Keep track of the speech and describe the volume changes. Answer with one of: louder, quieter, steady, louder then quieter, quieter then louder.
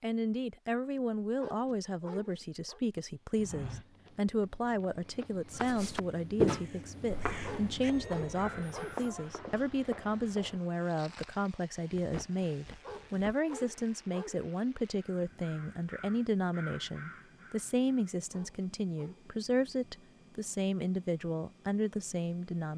steady.